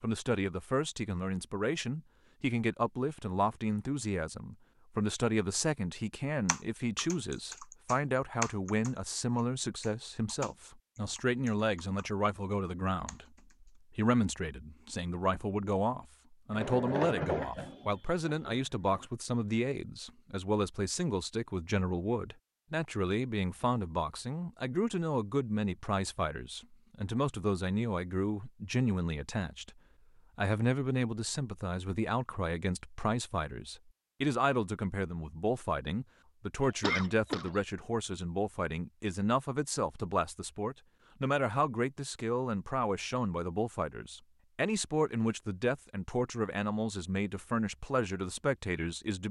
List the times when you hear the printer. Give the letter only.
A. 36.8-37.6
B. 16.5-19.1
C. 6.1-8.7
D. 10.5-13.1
B.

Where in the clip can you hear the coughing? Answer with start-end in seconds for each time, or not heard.
36.8-37.6.